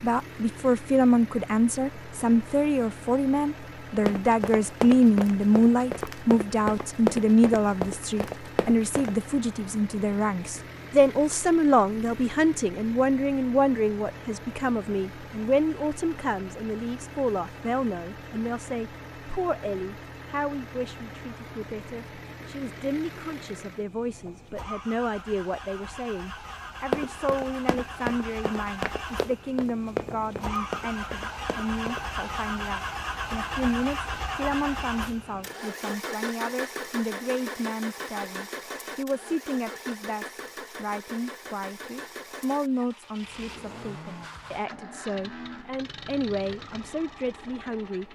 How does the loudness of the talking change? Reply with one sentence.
The loudness of the talking goes down.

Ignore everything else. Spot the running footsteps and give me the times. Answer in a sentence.
You can hear the running footsteps from 4.0 to 9.2 s and from 26.9 to 32.0 s.